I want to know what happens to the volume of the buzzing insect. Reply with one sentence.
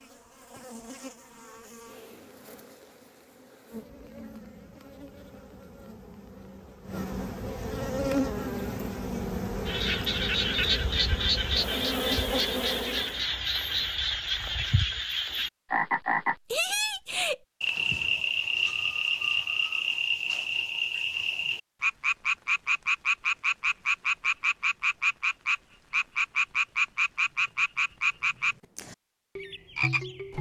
The volume of the buzzing insect goes up.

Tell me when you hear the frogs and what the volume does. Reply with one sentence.
The frogs can be heard from 9.7 to 30.3 s, at a steady volume.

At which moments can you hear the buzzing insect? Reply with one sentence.
You can hear the buzzing insect from 0.0 to 13.2 s.